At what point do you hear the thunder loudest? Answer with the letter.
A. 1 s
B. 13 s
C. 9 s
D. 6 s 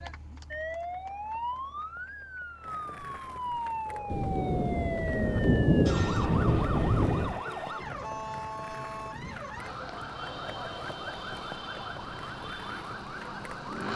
D.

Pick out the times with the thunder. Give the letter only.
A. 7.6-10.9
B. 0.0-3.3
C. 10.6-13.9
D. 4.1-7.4
D.